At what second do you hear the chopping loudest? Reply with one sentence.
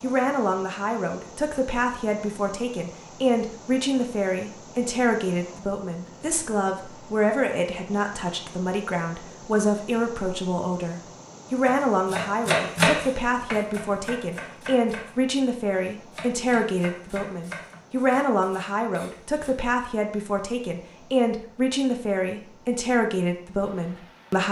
The volume of the chopping peaks at 13 seconds.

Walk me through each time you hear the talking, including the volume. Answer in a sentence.
You can hear the talking from 0.0 to 24.4 s, at a steady volume.